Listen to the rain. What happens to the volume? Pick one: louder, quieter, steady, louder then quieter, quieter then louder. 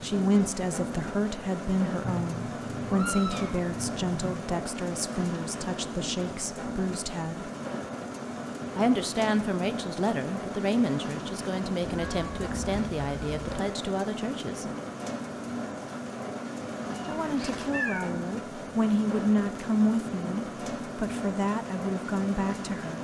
steady.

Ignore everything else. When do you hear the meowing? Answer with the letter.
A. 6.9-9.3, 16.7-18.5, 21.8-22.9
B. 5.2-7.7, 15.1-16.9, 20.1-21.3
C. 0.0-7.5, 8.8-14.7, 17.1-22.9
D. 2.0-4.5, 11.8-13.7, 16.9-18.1
D.